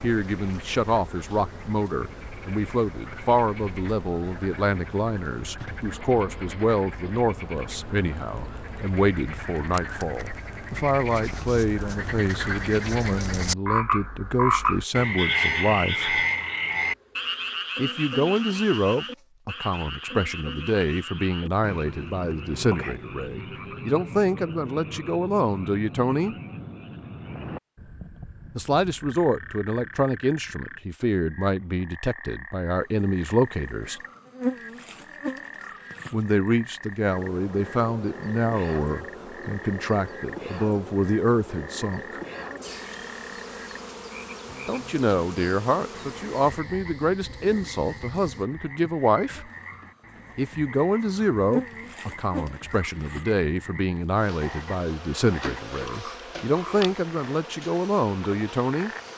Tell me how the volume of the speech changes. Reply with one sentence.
The loudness of the speech stays about the same.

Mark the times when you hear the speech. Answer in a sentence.
The speech can be heard from 0.0 to 16.2 s, from 17.8 to 26.4 s, from 28.6 to 34.0 s, from 36.1 to 42.2 s, from 44.6 to 49.5 s and from 50.4 to 58.9 s.